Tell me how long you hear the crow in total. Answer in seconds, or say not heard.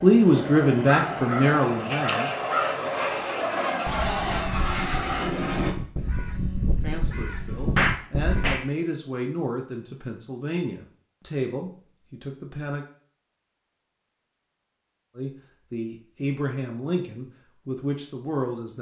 8 s.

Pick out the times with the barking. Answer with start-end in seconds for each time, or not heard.
not heard.